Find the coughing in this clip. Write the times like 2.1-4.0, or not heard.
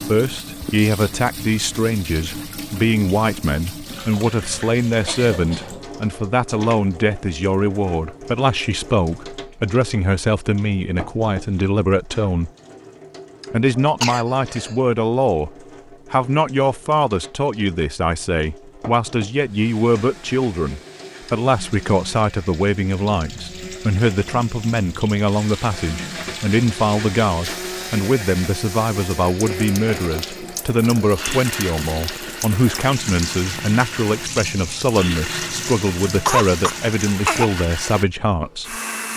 4.8-5.7, 13.8-14.8, 36.0-37.5.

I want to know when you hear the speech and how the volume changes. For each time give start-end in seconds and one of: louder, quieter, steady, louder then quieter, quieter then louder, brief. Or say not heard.
0.1-12.5 steady
13.5-15.5 brief
16.1-38.8 steady.